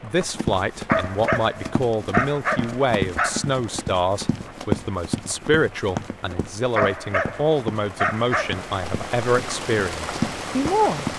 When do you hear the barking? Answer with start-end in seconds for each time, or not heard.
0.8-3.5, 6.8-8.7.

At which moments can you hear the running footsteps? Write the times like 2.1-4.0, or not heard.
0.2-11.1.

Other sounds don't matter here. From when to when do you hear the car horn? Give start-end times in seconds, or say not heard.
not heard.